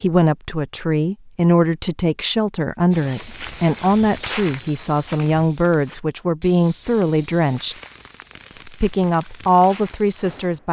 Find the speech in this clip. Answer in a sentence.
You can hear the speech from 0.0 to 7.8 s and from 8.7 to 10.6 s.